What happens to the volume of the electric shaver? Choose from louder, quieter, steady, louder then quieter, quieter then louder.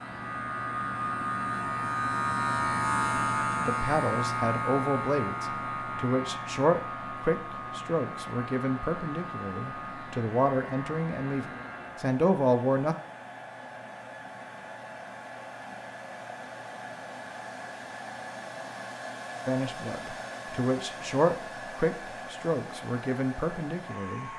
quieter.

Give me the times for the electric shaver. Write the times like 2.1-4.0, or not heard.
0.0-12.2.